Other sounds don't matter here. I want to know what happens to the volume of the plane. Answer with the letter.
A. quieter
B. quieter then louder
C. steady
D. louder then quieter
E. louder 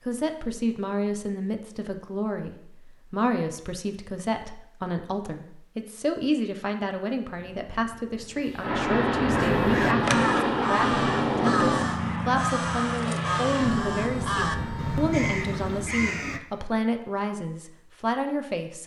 A.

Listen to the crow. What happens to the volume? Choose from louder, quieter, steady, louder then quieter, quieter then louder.
louder.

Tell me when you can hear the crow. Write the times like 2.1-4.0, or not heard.
7.3-16.4.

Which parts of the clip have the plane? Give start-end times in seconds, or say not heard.
8.6-15.9.